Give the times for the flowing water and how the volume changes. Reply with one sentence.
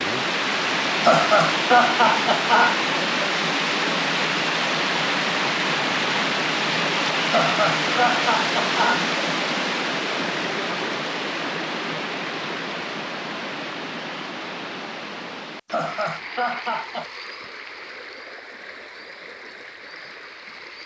The flowing water can be heard from 0.0 to 20.8 s, getting quieter.